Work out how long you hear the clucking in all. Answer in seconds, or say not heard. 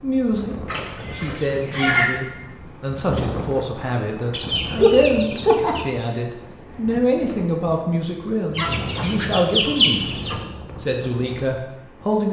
5 s.